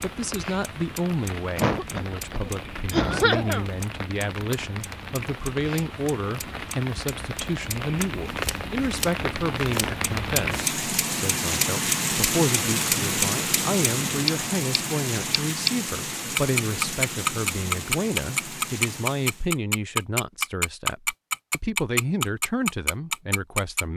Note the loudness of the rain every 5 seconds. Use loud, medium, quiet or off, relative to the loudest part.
medium, medium, loud, medium, off.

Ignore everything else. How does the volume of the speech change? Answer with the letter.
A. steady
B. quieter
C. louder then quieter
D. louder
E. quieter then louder
A.